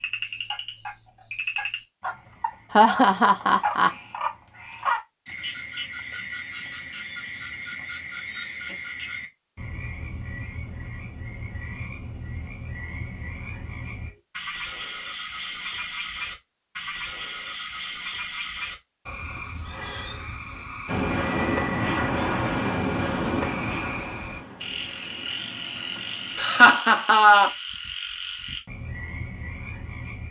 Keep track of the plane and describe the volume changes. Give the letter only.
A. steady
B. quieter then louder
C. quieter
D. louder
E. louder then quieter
C.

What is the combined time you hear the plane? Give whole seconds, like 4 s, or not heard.
6 s.